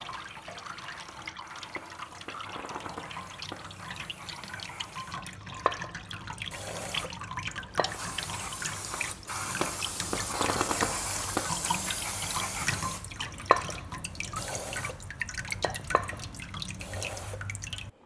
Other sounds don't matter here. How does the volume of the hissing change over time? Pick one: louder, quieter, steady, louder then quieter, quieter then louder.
louder then quieter.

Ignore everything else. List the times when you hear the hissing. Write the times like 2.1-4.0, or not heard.
0.0-18.0.